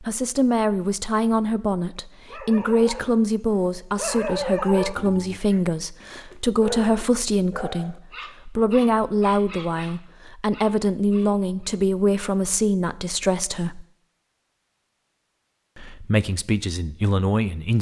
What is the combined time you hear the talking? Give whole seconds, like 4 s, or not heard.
16 s.